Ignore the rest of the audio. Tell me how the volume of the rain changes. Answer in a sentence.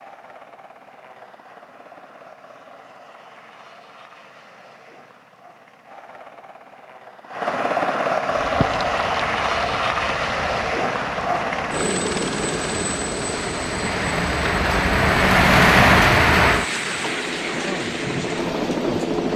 The loudness of the rain goes up, then down.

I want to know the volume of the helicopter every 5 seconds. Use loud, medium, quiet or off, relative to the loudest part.
quiet, loud, loud, loud.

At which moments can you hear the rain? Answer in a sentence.
You can hear the rain from 8.3 to 19.3 s.